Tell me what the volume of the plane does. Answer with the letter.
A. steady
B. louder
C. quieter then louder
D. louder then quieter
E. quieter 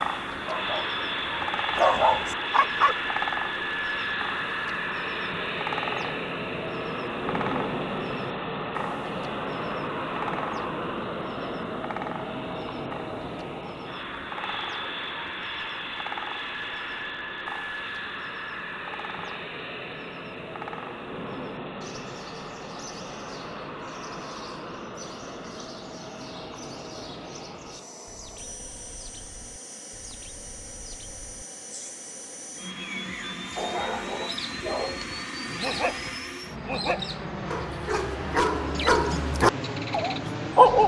C.